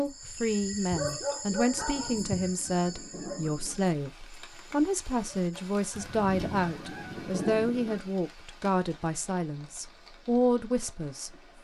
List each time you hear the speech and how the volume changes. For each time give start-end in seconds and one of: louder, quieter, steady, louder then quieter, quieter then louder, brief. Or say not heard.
0.0-11.3 steady.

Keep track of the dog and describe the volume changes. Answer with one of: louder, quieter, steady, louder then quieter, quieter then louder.
quieter.